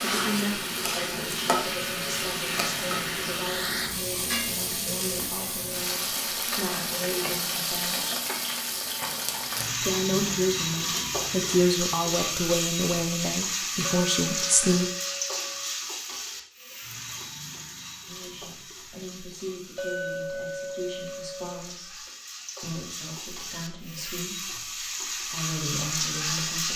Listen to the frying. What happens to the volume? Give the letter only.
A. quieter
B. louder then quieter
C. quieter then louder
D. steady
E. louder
C.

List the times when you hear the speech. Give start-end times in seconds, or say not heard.
0.0-8.2, 9.8-14.8, 18.1-26.7.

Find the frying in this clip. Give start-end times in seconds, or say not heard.
0.0-26.7.